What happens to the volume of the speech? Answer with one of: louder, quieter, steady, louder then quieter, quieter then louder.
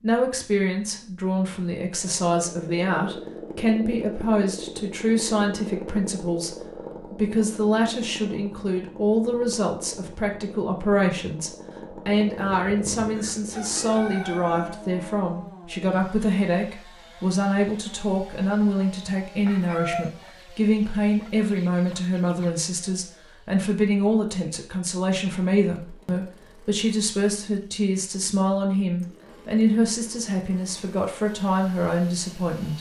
steady.